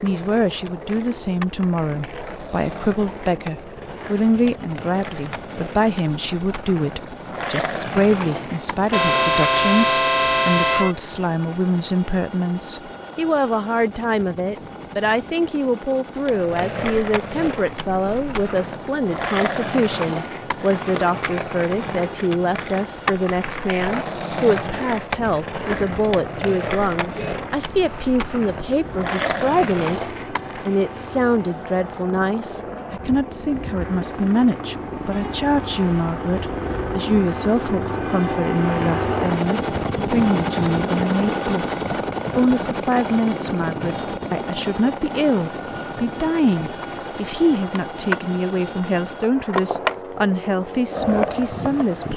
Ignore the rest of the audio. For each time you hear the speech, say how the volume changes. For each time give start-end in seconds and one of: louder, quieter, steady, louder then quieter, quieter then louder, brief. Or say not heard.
0.0-52.1 steady.